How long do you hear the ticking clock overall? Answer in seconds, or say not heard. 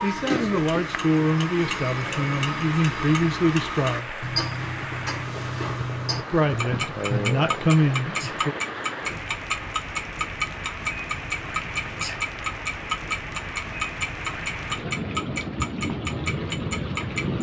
17 s.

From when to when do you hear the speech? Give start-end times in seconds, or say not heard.
0.0-4.2, 6.3-8.6.